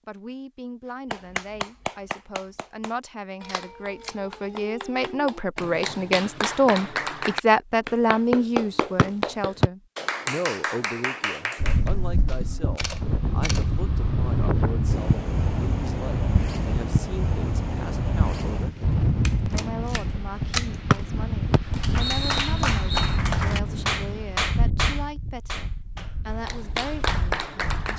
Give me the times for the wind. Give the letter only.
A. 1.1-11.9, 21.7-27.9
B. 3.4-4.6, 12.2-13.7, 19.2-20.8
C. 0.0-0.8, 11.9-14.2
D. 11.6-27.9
D.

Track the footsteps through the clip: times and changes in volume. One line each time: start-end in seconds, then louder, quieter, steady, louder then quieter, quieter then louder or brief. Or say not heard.
not heard.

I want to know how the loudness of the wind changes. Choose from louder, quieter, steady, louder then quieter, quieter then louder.
quieter.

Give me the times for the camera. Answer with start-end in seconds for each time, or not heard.
3.4-4.6, 12.2-13.7, 19.2-20.8.